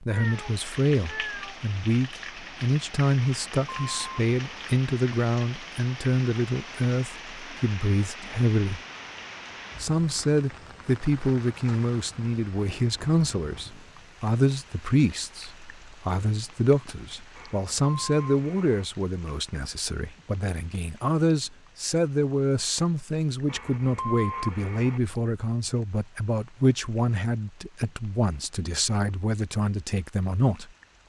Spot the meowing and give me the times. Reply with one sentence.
You can hear the meowing from 0.1 to 1.6 s.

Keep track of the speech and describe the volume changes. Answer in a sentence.
The loudness of the speech stays about the same.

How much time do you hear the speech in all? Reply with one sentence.
The speech can be heard for 30 seconds in total.